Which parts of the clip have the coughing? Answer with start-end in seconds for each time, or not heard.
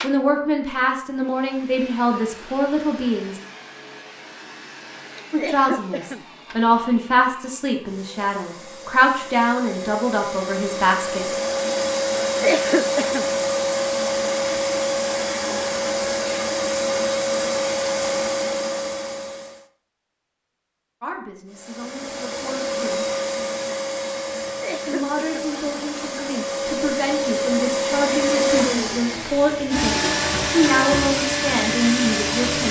5.2-6.2, 12.2-13.3, 24.4-25.5.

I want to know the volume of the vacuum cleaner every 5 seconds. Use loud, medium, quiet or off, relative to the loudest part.
quiet, quiet, loud, loud, medium, loud, loud.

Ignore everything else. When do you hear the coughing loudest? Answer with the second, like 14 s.
13 s.